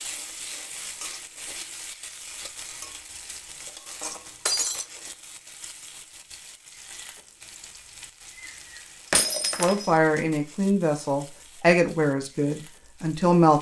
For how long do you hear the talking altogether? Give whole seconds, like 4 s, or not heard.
4 s.